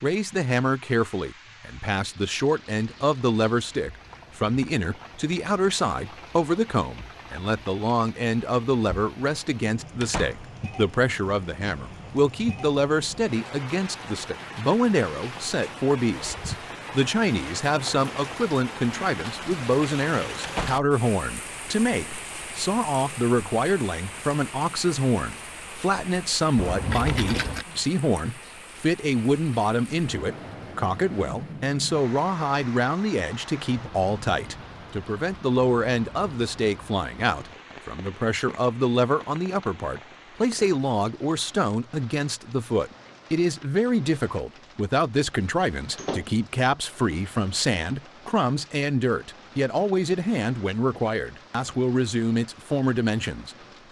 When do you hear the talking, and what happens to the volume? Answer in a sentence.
You can hear the talking from 0.0 to 53.8 s, at a steady volume.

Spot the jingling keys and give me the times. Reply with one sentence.
You can hear the jingling keys from 26.6 to 27.6 s.